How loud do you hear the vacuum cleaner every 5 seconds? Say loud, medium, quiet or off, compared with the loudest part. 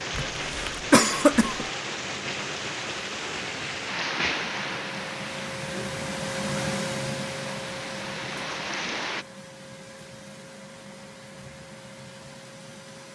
medium, loud, medium.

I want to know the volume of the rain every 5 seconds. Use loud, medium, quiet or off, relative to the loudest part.
loud, loud, off.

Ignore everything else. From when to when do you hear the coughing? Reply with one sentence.
You can hear the coughing from 0.1 to 1.6 s.